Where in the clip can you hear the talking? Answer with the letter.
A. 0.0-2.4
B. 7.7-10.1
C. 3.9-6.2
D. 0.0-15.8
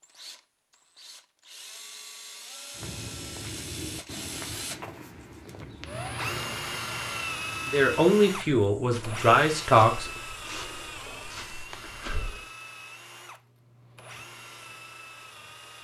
B.